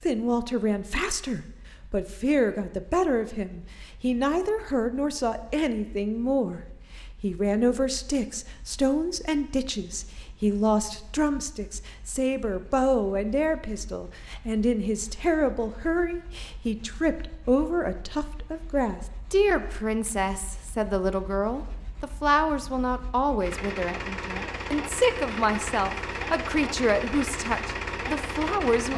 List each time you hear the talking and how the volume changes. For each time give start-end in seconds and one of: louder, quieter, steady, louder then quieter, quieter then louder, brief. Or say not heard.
0.0-28.9 steady.